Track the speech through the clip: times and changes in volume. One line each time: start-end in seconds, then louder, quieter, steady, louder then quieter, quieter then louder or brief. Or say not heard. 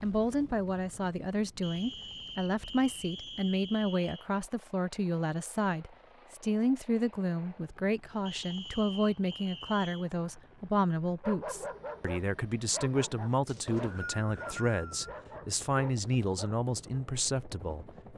0.0-17.9 steady.